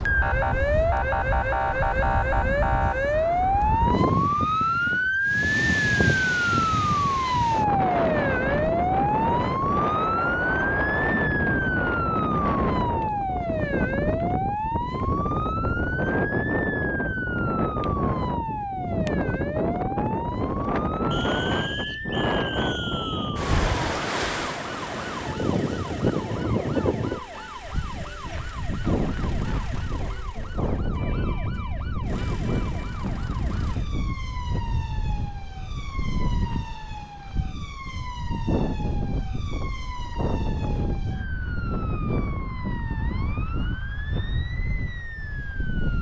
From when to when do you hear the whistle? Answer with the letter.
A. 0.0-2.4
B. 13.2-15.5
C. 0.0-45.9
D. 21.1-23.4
D.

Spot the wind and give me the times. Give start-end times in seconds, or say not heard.
0.0-45.9.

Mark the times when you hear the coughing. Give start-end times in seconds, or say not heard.
not heard.